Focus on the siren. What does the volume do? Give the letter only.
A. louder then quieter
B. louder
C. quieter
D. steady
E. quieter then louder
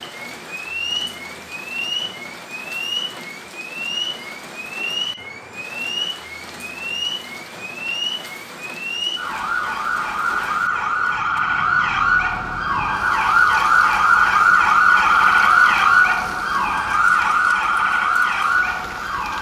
B.